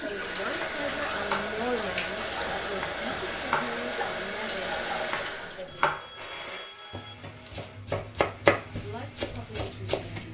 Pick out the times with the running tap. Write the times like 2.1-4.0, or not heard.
0.0-5.8.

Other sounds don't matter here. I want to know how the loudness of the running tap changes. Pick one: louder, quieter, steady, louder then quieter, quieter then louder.
steady.